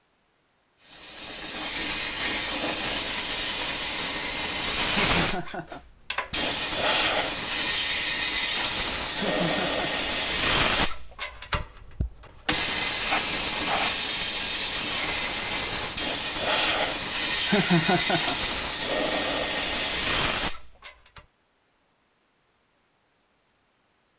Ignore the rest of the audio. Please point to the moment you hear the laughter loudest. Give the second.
18 s.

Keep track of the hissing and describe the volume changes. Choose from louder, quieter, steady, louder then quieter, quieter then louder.
steady.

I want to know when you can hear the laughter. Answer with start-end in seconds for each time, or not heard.
4.9-5.8, 9.2-10.1, 17.4-18.4.